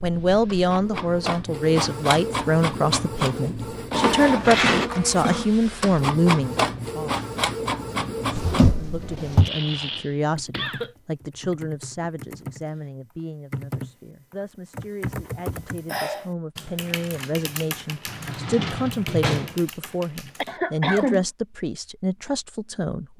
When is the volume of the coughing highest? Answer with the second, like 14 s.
21 s.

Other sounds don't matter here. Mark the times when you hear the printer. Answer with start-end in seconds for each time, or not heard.
0.0-8.8.